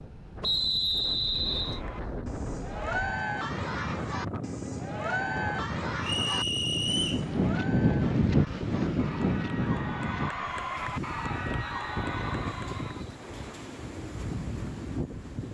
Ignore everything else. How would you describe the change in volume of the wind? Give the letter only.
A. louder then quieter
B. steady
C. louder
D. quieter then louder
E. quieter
A.